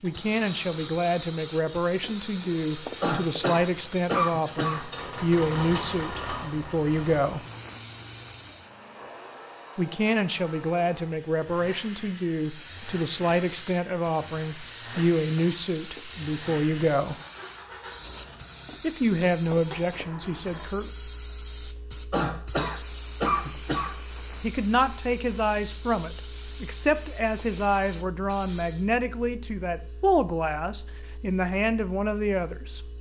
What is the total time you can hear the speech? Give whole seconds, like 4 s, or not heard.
25 s.